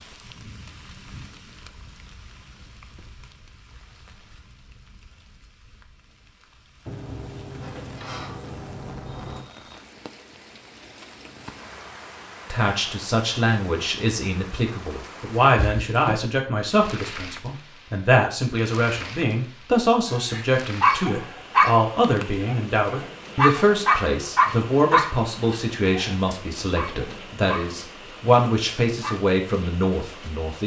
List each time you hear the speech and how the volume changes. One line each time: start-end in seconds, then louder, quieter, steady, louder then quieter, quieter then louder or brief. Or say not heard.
12.5-30.6 steady.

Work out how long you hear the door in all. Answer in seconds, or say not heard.
3 s.